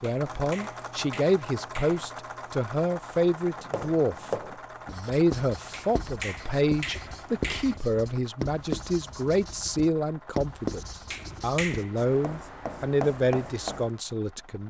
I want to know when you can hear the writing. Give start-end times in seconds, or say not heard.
3.5-13.9.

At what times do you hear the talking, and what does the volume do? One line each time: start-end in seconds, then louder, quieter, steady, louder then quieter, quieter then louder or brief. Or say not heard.
0.0-14.6 steady.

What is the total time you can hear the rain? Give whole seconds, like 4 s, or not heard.
not heard.